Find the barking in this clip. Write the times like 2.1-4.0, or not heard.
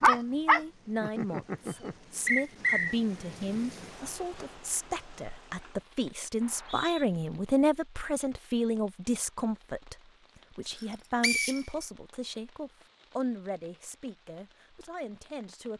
0.0-1.9.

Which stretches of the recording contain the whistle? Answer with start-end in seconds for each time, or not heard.
2.2-3.0, 6.4-7.0, 11.2-11.8.